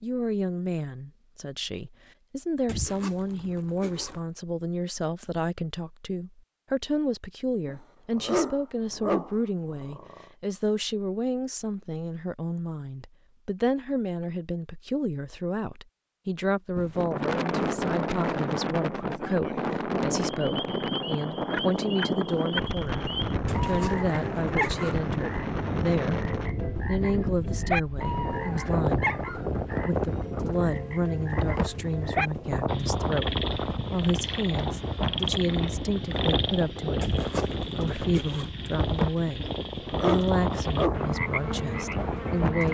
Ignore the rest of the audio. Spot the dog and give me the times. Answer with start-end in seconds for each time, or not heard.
7.7-10.2, 39.4-41.0.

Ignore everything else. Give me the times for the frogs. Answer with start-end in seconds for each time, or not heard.
20.2-42.6.